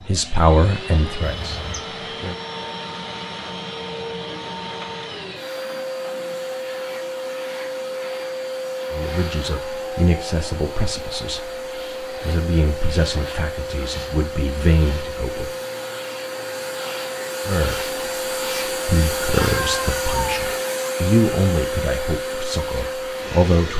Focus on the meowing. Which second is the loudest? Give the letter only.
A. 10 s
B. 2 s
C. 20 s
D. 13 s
C.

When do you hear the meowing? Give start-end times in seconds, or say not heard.
1.2-1.8, 19.4-20.4.